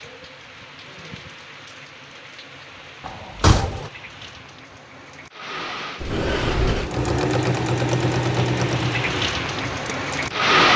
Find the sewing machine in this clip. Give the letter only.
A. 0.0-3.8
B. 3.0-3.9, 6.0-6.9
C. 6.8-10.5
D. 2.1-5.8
C.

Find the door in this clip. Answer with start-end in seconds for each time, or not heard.
3.0-3.9, 6.0-6.9.